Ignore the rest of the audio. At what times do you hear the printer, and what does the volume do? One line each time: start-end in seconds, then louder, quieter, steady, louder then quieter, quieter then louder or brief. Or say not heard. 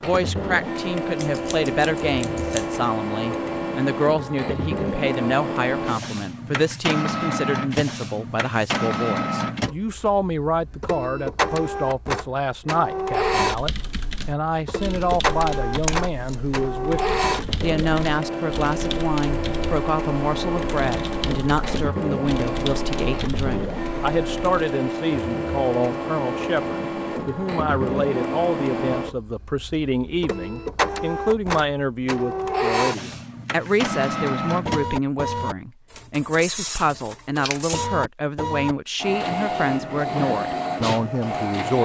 0.0-41.7 steady.